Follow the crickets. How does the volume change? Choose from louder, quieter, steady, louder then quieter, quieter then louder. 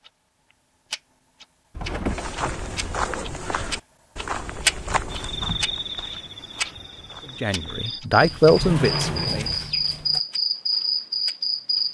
quieter then louder.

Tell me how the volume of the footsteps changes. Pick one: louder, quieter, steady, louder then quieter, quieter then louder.
quieter.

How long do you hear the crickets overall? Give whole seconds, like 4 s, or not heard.
7 s.